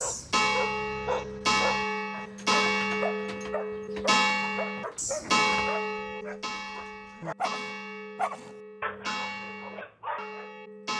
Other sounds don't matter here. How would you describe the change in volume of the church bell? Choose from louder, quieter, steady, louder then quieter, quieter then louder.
quieter.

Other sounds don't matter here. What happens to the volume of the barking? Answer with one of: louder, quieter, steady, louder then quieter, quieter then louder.
steady.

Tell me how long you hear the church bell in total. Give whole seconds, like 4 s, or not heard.
11 s.